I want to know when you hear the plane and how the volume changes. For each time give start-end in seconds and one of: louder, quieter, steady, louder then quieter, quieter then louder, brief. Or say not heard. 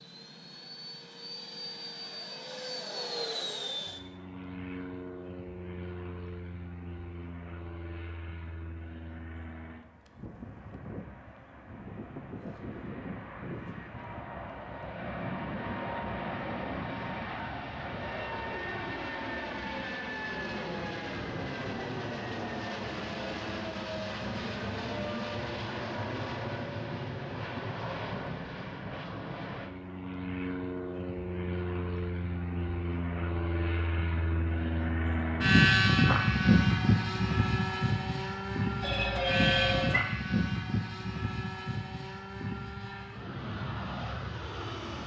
0.0-45.0 louder.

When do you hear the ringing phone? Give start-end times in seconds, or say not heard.
38.8-40.0.